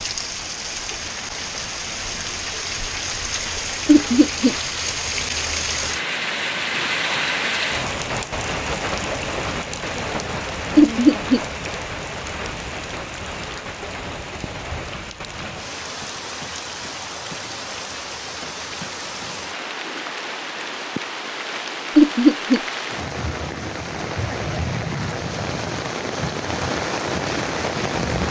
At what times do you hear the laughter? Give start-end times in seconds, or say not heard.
3.9-4.5, 10.8-11.4, 21.9-22.6.